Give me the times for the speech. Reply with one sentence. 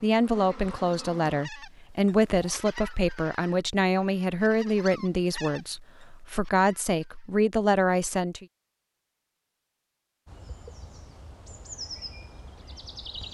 The speech can be heard from 0.0 to 8.4 s.